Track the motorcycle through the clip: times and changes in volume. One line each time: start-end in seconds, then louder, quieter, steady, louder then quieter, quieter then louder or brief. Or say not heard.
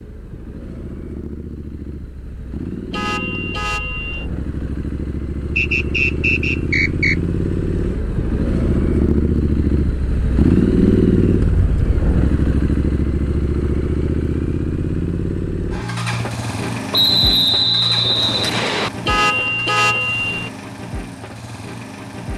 0.0-22.3 louder then quieter.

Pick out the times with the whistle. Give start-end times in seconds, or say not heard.
5.5-7.2, 16.9-18.9.